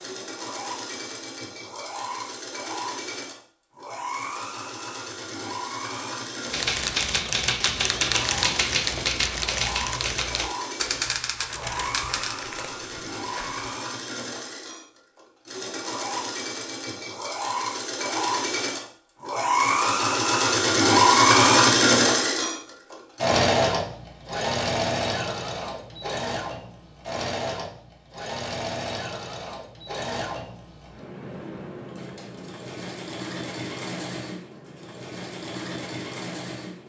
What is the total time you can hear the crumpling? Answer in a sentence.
The crumpling can be heard for 2 seconds in total.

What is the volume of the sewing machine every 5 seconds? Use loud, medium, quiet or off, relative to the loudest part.
quiet, quiet, quiet, medium, loud, quiet, quiet, quiet.